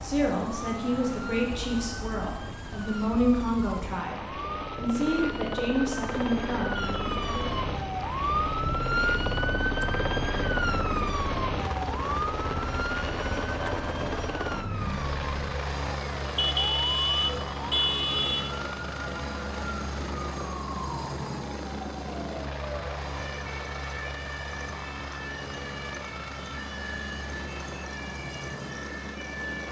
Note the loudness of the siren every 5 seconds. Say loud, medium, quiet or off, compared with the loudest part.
medium, loud, loud, medium, medium, medium.